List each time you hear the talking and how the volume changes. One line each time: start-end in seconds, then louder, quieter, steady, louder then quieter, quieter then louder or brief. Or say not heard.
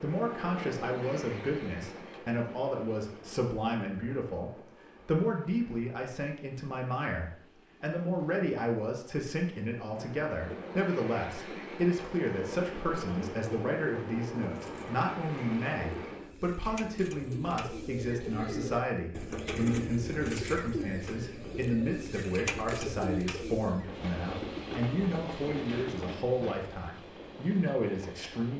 0.0-28.5 steady.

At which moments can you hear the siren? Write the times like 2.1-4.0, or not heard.
not heard.